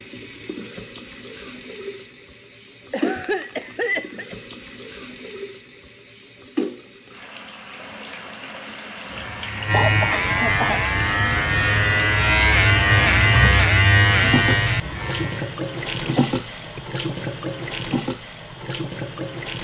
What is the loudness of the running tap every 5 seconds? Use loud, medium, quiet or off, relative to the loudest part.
medium, medium, loud, loud.